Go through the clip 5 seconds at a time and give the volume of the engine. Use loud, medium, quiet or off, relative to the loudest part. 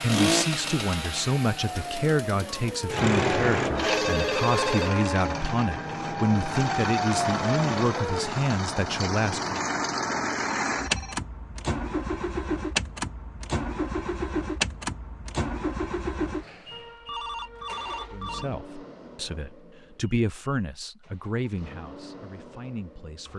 loud, loud, loud, medium, quiet.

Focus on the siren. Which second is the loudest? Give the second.
7 s.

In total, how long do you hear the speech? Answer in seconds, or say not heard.
15 s.